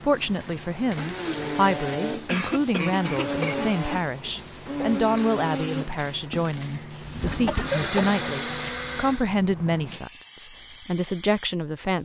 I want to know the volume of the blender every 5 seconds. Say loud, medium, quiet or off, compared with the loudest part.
loud, loud, off.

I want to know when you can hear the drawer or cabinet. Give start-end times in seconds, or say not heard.
7.0-7.8.